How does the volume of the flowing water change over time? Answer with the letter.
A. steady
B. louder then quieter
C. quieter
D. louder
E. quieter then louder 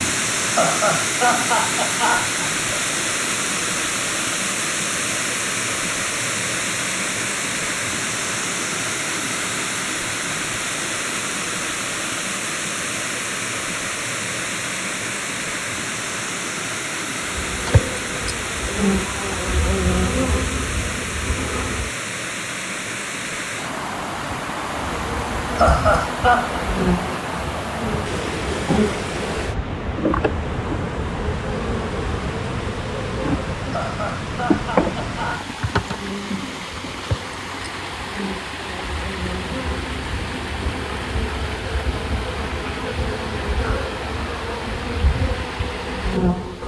C.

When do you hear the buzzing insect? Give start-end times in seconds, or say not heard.
17.4-21.9, 24.8-46.6.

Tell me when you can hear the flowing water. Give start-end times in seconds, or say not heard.
0.0-46.6.